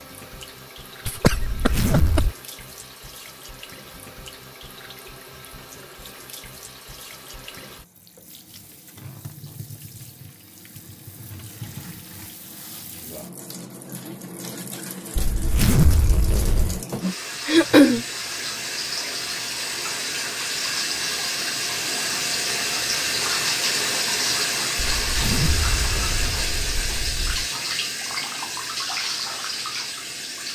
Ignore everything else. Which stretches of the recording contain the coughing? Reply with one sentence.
The coughing can be heard from 1.1 to 2.3 s and from 17.4 to 18.1 s.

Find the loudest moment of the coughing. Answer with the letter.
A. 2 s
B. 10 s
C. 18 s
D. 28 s
C.